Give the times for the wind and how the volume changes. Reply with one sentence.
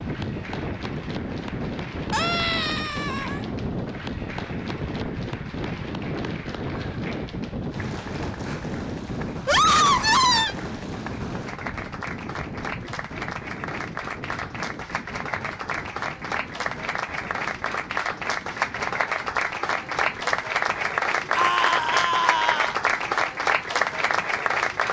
You can hear the wind from 0.0 to 24.8 s, getting quieter.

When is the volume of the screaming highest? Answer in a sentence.
The volume of the screaming peaks at 10 seconds.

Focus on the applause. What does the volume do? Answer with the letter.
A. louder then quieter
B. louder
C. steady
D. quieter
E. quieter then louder
B.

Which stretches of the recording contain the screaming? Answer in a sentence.
You can hear the screaming from 2.1 to 3.5 s, from 9.4 to 10.6 s and from 21.4 to 22.8 s.